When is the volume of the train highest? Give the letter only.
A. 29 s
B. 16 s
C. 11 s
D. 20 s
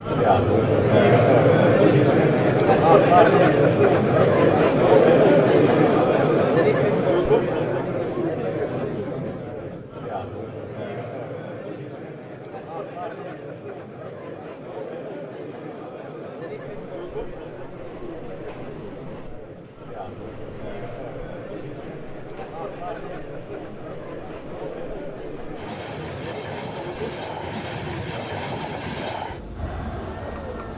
A.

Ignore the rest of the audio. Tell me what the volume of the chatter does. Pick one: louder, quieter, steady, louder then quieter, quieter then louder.
quieter.